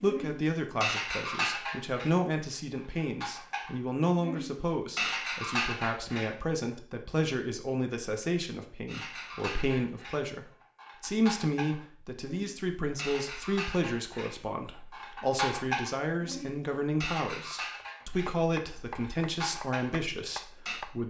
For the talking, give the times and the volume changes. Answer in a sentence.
You can hear the talking from 0.0 to 21.0 s, at a steady volume.